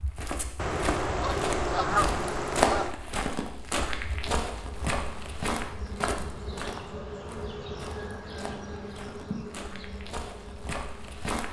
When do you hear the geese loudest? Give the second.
2 s.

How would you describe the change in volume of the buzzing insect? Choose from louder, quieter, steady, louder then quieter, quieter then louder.
louder then quieter.